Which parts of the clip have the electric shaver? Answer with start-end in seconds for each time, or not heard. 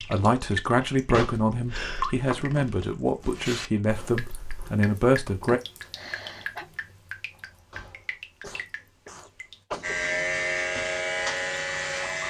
9.8-12.2.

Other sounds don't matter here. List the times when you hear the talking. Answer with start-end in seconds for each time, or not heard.
0.0-5.6.